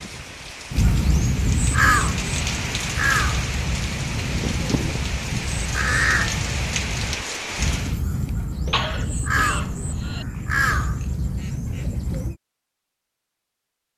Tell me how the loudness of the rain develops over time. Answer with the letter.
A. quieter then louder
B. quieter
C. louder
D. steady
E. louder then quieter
C.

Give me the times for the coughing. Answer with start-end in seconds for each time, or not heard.
8.7-10.2.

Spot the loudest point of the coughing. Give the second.
9 s.